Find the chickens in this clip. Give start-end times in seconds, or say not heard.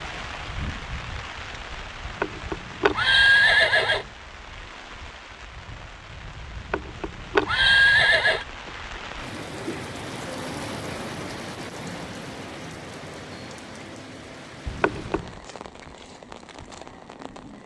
not heard.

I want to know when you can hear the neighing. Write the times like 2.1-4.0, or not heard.
2.0-4.0, 6.5-8.4, 14.7-15.3.